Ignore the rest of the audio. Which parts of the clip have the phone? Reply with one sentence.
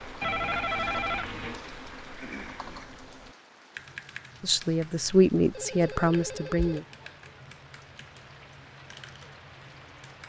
You can hear the phone from 0.2 to 1.6 s and from 5.5 to 6.8 s.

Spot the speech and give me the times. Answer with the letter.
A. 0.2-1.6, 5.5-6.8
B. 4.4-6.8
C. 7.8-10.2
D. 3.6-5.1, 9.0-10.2
B.